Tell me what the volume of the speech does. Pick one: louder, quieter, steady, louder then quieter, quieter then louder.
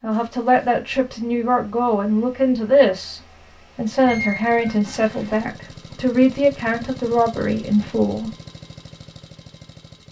steady.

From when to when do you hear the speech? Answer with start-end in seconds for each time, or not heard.
0.0-8.3.